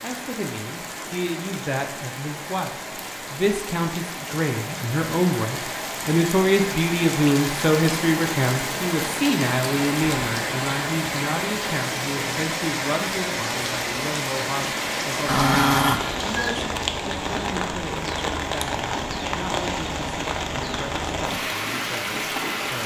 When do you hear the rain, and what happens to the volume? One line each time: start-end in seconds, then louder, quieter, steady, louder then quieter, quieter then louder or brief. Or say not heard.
0.0-22.8 louder.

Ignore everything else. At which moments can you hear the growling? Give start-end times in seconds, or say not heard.
15.2-16.6.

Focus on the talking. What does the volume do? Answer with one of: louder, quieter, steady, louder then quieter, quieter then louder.
louder then quieter.